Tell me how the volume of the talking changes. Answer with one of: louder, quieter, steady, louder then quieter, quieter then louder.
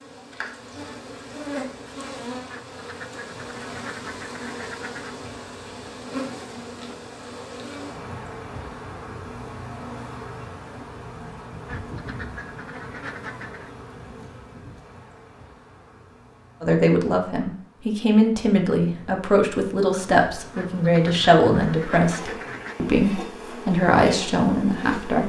steady.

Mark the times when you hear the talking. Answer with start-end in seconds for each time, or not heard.
16.6-25.2.